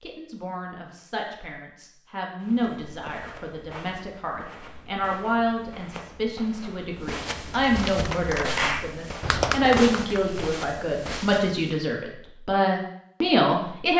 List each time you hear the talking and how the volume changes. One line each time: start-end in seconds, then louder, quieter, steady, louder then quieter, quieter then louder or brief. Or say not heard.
0.0-13.9 louder.